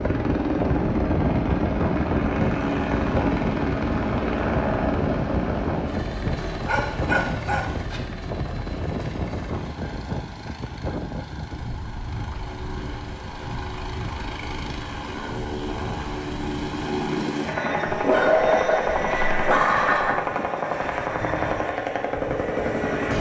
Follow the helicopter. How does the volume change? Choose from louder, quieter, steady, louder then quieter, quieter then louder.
quieter then louder.